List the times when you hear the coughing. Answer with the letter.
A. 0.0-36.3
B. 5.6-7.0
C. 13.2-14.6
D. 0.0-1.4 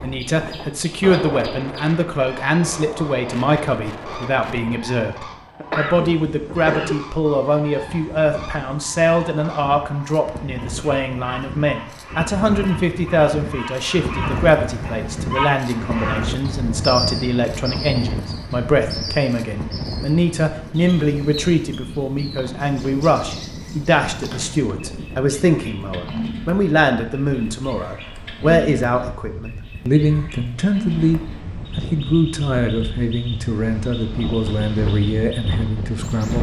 B.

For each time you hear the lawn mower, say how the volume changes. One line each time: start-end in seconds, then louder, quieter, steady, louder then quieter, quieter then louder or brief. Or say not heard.
not heard.